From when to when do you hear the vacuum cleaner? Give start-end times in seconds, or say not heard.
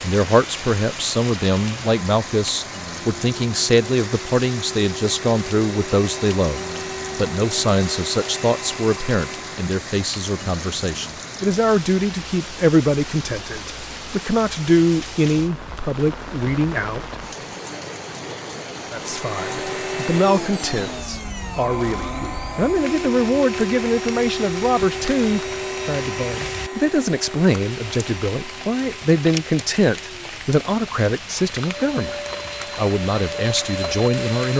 0.0-9.7, 18.9-34.5.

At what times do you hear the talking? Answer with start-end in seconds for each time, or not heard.
0.0-17.1, 18.9-34.5.